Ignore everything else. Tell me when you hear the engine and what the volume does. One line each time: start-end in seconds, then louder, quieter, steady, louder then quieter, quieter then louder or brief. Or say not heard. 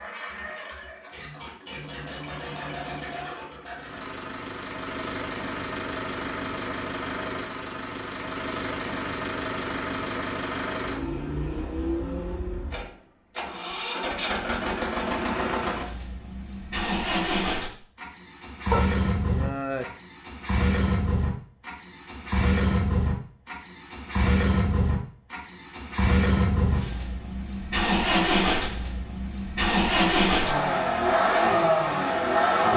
0.0-32.7 louder.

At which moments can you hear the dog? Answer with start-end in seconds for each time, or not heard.
18.7-19.9.